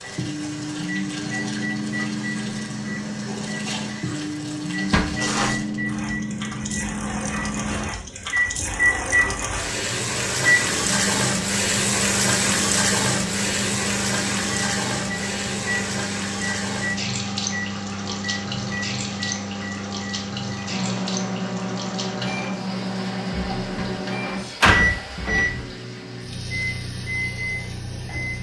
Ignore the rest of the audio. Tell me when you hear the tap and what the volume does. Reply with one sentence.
You can hear the tap from 0.0 to 28.3 s, getting louder then quieter.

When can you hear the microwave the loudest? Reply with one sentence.
The volume of the microwave peaks at 9 seconds.